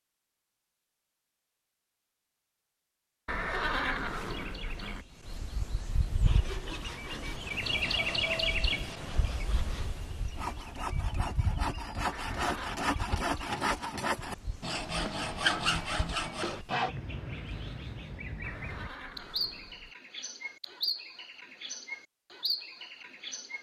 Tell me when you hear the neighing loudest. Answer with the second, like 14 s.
4 s.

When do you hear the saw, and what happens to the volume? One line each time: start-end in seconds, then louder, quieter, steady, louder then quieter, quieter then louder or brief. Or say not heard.
6.2-16.9 louder.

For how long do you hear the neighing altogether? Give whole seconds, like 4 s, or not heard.
4 s.